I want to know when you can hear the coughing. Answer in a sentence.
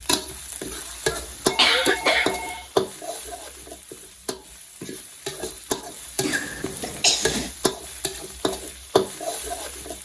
You can hear the coughing from 1.1 to 2.5 s and from 6.2 to 7.5 s.